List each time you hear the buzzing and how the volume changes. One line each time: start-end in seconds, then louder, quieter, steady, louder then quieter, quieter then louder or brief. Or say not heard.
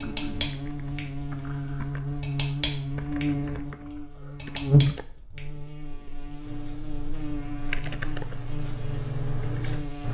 0.0-10.0 louder then quieter.